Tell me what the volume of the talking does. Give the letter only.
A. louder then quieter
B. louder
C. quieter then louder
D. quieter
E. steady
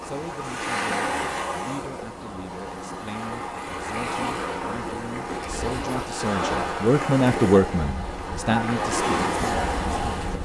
A.